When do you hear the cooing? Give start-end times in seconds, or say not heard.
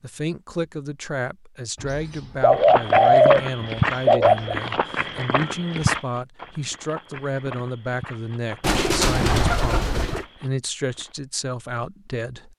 1.8-4.5, 8.6-10.2.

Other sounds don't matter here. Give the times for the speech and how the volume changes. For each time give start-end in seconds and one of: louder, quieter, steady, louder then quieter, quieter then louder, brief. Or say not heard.
0.0-12.5 steady.